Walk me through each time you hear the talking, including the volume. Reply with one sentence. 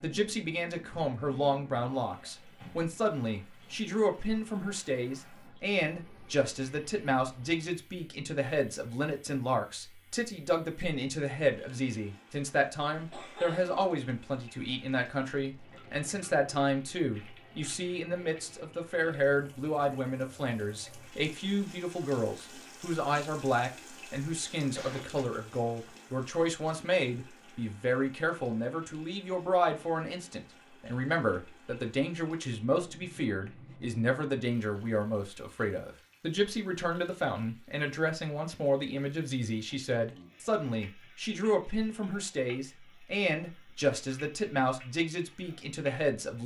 The talking can be heard from 0.0 to 46.4 s, at a steady volume.